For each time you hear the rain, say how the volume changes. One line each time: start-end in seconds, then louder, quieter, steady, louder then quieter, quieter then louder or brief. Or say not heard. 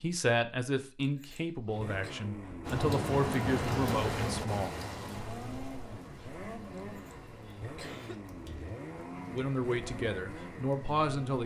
2.6-11.4 quieter.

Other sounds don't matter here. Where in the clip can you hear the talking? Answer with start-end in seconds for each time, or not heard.
0.0-4.7, 9.3-11.4.